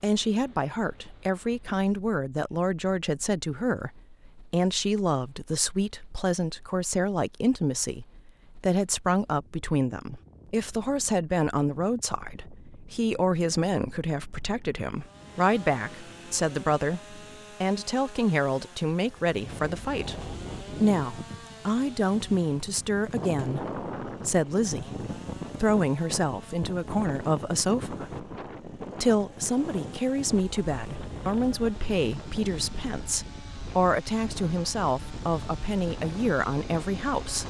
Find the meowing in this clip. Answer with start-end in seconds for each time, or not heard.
not heard.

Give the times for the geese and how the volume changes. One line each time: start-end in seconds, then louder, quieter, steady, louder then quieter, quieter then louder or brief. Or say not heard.
not heard.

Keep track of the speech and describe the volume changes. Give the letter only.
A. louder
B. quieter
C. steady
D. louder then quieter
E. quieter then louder
C.